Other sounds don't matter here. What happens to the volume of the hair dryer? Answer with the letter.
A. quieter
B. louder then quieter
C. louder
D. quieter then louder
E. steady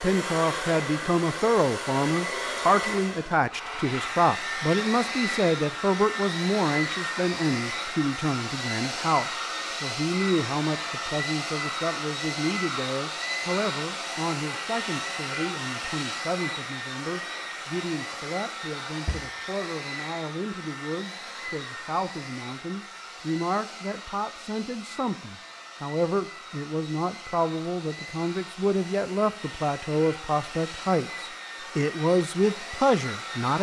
A.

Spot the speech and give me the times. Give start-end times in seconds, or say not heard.
0.0-33.5.